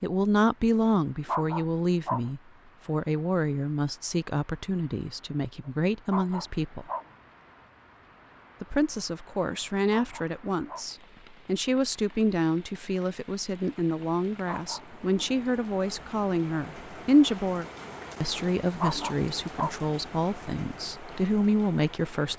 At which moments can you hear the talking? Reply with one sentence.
You can hear the talking from 0.0 to 6.8 s and from 8.6 to 22.3 s.